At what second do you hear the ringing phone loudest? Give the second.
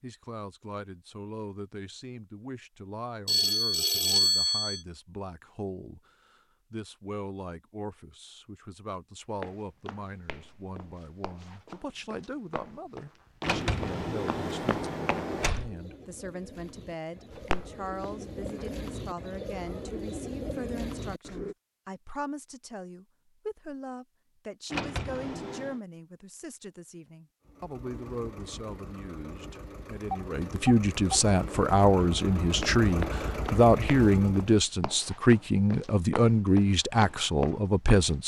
4 s.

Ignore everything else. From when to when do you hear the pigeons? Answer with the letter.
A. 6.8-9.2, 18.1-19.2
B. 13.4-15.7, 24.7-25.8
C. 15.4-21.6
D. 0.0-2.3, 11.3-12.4
C.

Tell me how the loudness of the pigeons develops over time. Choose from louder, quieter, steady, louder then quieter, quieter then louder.
louder.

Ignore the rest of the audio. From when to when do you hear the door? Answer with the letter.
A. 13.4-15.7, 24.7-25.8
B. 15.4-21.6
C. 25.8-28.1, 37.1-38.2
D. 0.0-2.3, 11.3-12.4
A.